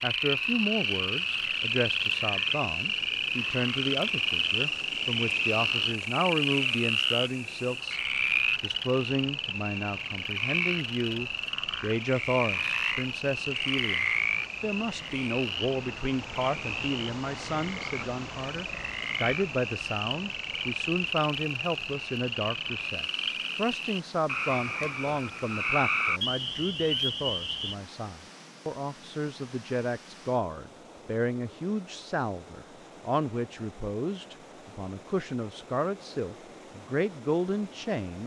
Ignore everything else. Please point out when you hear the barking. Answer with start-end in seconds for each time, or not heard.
not heard.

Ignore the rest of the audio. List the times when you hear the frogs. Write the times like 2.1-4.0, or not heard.
0.0-27.8.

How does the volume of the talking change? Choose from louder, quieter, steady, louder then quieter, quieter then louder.
steady.